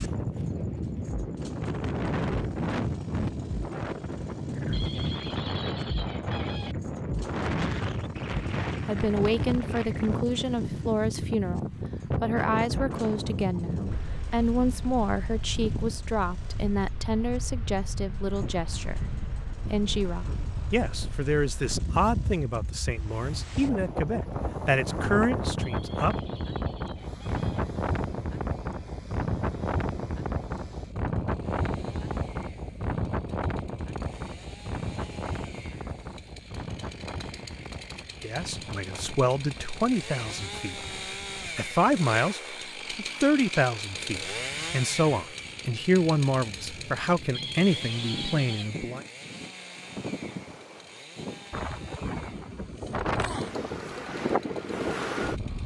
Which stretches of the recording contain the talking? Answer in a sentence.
The talking can be heard from 8.8 to 19.0 s, from 19.7 to 26.1 s, from 38.2 to 40.8 s and from 41.5 to 49.0 s.